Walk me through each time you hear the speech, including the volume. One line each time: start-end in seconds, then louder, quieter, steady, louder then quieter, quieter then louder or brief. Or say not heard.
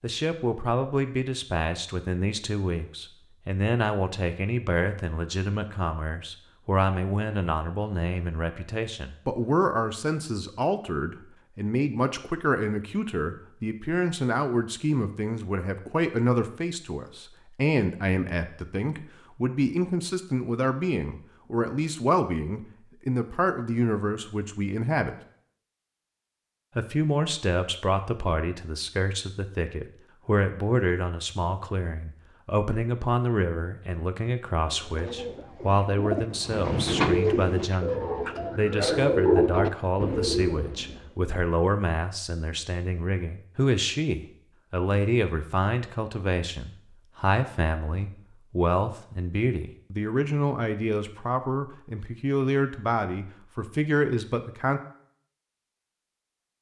0.0-25.1 steady
26.8-54.8 steady.